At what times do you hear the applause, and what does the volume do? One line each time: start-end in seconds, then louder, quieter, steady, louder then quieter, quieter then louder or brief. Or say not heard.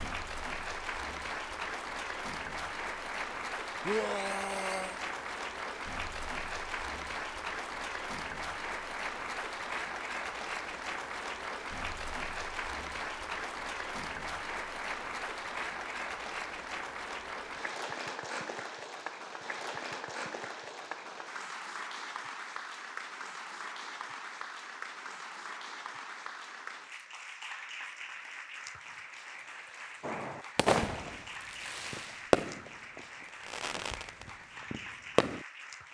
0.0-35.8 quieter.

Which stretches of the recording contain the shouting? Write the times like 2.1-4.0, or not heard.
3.9-5.0.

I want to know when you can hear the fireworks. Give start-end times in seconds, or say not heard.
30.0-35.5.